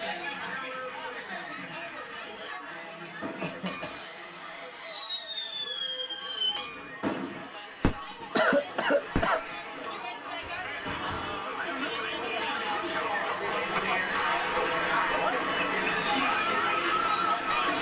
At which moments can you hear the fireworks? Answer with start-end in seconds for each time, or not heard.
3.2-8.3, 9.2-9.7, 10.4-11.5.